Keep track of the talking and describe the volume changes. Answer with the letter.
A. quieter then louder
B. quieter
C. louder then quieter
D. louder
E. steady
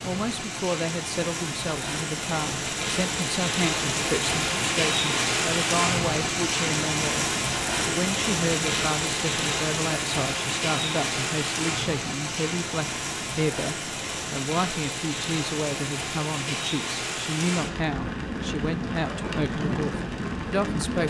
E.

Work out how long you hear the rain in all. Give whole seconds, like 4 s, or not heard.
21 s.